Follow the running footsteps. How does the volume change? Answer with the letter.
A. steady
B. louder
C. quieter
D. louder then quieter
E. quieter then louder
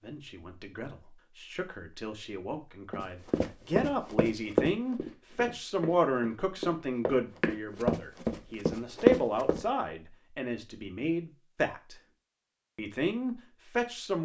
E.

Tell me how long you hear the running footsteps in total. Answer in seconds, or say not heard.
7 s.